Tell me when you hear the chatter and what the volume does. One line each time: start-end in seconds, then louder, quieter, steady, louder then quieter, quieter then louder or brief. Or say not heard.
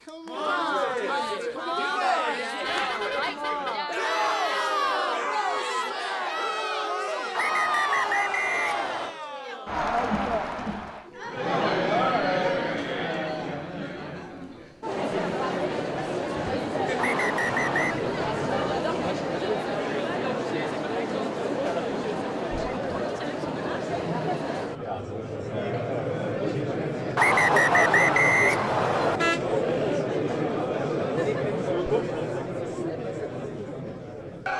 0.1-34.5 steady.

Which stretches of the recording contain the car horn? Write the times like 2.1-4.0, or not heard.
2.6-3.9, 17.5-18.8, 29.1-30.0.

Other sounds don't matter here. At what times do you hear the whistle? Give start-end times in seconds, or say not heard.
7.3-9.2, 16.9-18.0, 27.1-29.2.